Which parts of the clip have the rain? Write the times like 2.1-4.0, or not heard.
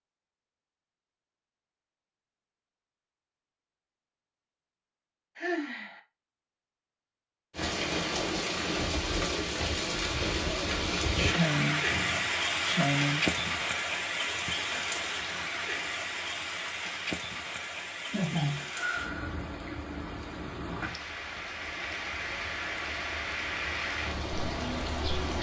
7.5-25.3.